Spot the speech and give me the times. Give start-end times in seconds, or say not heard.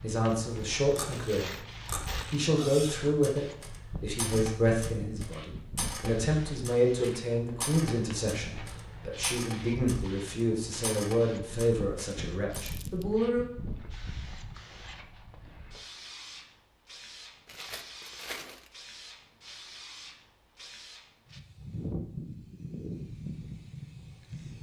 0.0-1.5, 2.3-13.4.